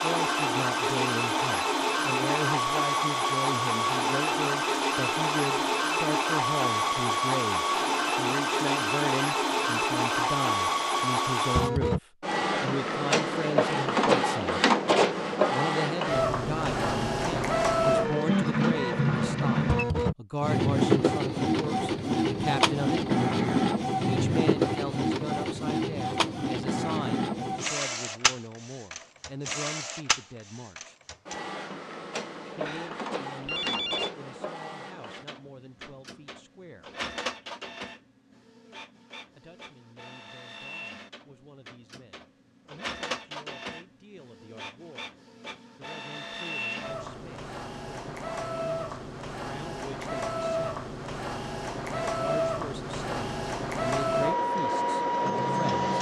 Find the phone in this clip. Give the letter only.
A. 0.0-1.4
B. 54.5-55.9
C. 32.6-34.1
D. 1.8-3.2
C.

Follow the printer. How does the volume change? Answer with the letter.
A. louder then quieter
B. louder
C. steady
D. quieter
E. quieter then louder
E.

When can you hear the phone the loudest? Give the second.
34 s.